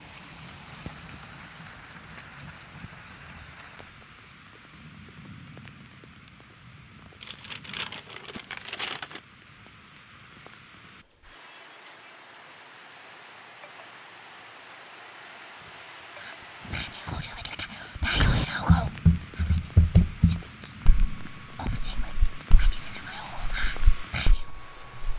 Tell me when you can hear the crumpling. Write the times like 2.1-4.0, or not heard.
7.2-9.2.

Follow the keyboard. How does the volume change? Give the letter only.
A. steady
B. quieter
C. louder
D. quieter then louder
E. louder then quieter
D.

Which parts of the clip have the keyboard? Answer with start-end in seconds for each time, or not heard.
18.1-25.1.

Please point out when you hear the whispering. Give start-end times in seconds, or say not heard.
16.1-24.6.